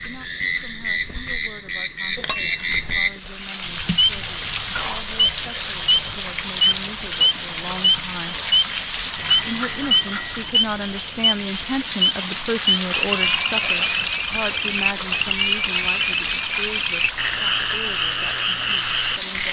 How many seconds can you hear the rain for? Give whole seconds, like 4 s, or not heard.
16 s.